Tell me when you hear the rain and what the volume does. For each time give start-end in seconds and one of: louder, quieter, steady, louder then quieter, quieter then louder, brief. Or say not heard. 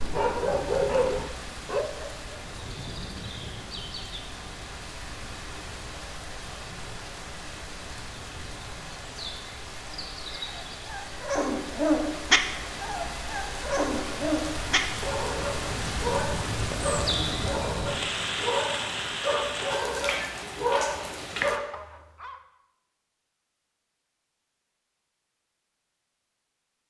0.0-21.6 louder.